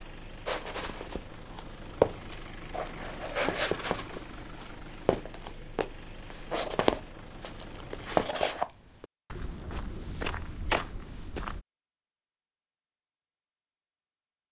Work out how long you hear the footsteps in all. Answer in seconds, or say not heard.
11 s.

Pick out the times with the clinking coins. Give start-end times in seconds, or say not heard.
3.4-4.0.